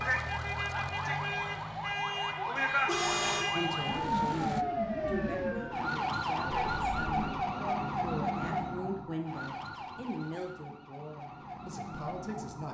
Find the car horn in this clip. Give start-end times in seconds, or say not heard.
2.5-3.5, 6.5-7.2.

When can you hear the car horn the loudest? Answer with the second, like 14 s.
3 s.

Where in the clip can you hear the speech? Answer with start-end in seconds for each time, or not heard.
3.5-12.6.